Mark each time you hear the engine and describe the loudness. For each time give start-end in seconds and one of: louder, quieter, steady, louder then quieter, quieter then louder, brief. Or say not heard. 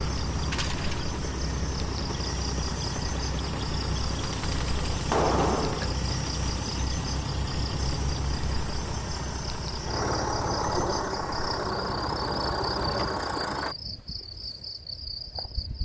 0.0-13.8 steady.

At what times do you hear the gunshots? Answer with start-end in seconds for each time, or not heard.
4.2-6.0.